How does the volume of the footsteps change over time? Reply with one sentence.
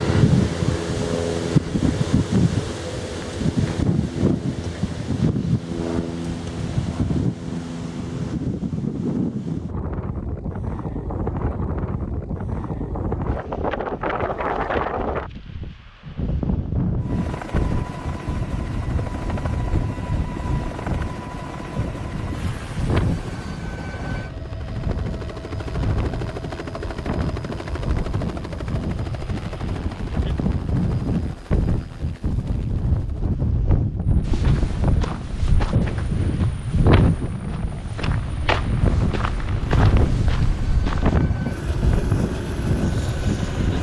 The volume of the footsteps goes down, then up.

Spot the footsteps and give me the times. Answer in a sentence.
You can hear the footsteps from 34.2 to 41.2 s.